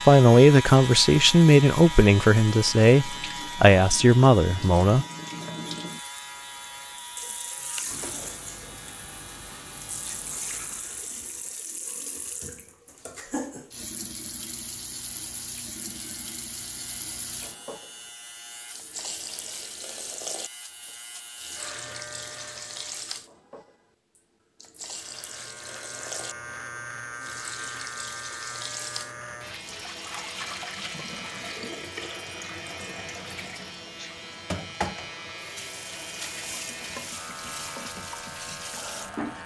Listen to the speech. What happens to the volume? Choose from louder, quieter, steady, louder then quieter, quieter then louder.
steady.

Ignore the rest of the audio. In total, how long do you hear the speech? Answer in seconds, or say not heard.
5 s.